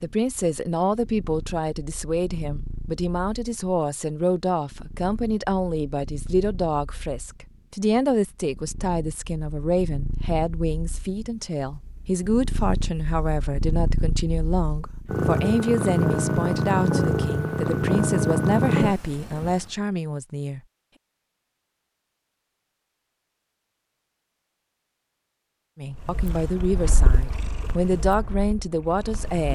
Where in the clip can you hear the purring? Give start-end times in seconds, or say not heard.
0.1-19.7, 25.9-29.5.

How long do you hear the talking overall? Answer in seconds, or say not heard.
24 s.